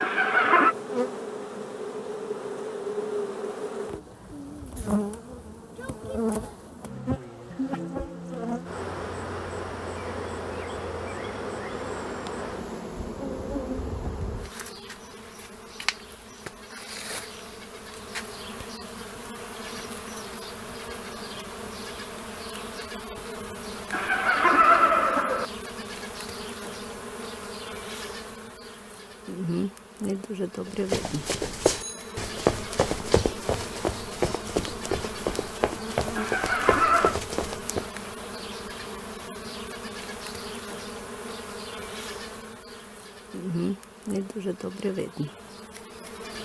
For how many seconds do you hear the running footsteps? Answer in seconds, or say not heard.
7 s.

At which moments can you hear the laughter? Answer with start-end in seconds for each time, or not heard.
0.0-0.8, 23.9-25.4, 36.1-37.2.